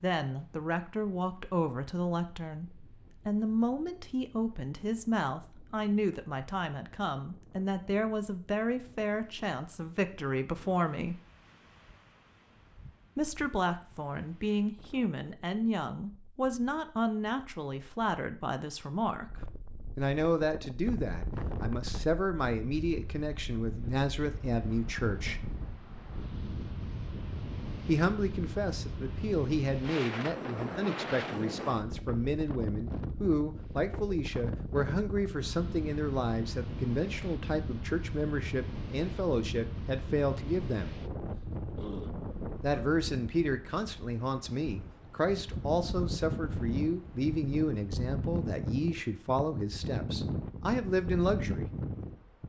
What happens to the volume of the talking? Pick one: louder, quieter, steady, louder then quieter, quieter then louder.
steady.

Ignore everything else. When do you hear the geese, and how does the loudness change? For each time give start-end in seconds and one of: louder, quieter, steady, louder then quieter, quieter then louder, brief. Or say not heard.
not heard.